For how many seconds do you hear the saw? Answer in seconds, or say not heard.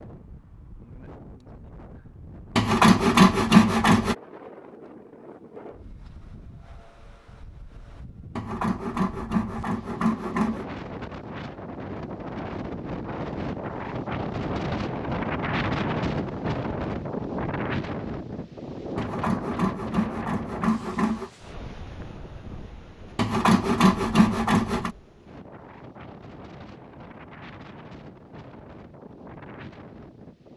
8 s.